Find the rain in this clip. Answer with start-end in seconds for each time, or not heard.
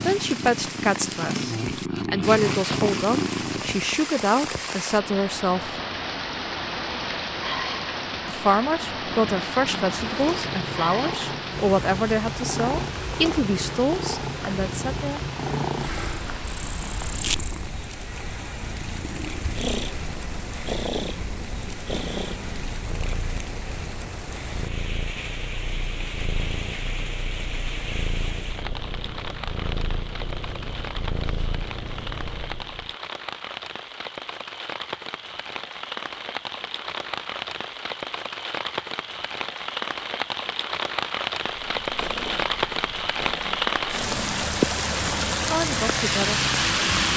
0.0-47.1.